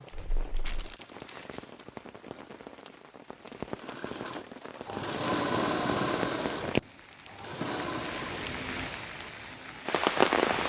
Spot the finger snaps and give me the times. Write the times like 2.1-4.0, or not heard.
not heard.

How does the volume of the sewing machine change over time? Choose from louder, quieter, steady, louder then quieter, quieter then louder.
louder then quieter.